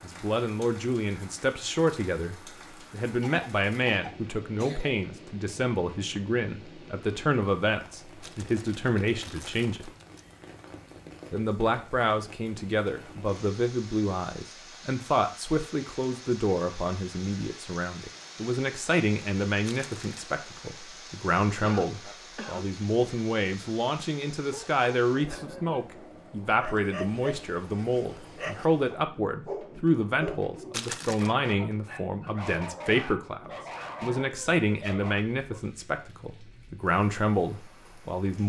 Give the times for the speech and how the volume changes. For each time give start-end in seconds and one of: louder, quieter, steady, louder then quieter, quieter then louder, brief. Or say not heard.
0.0-9.9 steady
11.3-38.4 steady.